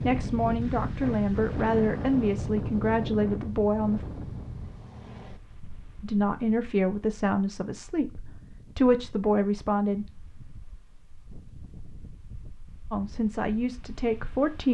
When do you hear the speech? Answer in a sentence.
The speech can be heard from 0.0 to 4.0 s, from 6.0 to 10.2 s and from 12.9 to 14.7 s.